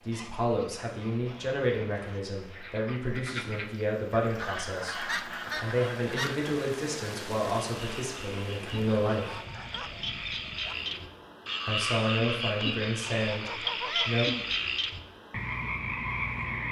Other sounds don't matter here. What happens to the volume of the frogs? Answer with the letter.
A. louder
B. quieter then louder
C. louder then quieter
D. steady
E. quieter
A.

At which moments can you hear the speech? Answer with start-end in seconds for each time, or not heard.
0.1-9.3, 11.7-14.2.